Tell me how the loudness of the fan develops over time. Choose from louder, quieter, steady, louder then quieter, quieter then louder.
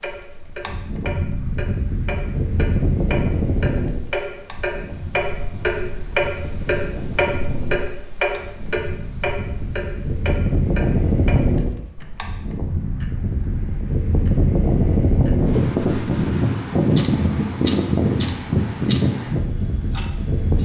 quieter then louder.